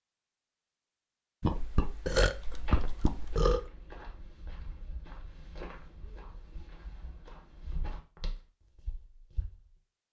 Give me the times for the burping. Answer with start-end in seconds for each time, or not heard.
1.4-3.6.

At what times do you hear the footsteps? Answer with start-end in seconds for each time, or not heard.
2.5-9.8.